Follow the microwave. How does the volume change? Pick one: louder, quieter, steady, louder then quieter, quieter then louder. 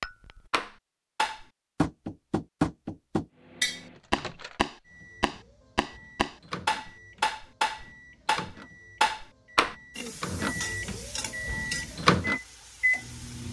louder.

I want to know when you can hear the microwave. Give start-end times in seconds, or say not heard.
3.4-13.4.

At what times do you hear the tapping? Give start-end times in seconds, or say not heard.
0.0-9.8.